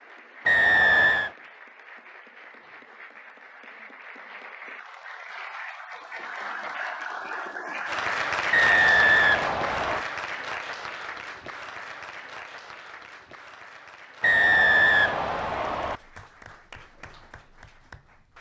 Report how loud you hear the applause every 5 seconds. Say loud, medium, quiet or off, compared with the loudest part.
quiet, loud, medium, quiet.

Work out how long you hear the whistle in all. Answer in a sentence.
You can hear the whistle for 4 seconds altogether.